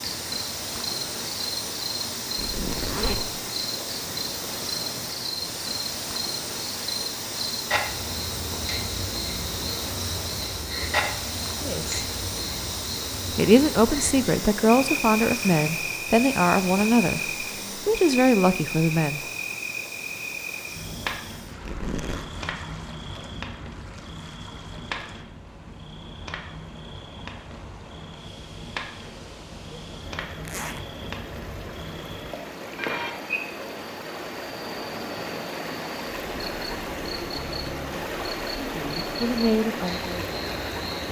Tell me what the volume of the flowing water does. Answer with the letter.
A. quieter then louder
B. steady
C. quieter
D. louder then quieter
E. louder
A.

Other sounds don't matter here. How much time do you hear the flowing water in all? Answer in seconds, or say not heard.
41 s.